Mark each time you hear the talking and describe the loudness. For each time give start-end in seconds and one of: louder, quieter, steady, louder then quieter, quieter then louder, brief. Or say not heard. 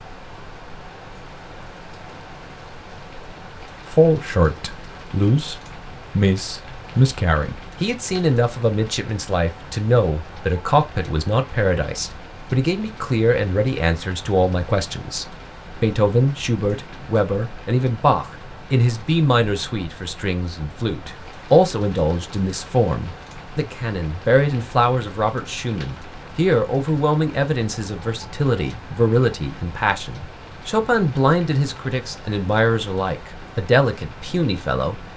3.9-35.0 steady.